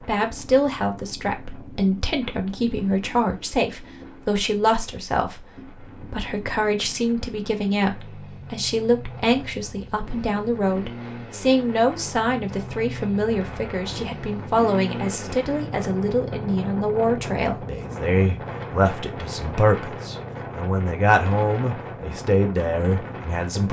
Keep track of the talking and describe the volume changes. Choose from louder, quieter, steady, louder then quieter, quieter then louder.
steady.